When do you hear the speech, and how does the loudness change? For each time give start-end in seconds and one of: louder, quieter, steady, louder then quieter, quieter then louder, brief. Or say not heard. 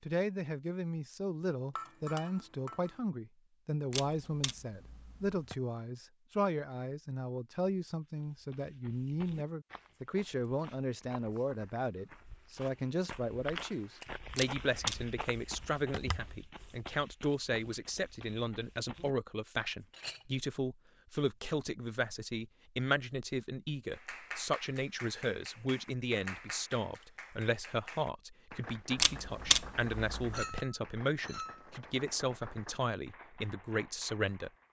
0.0-34.5 steady.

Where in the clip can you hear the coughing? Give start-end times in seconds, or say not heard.
not heard.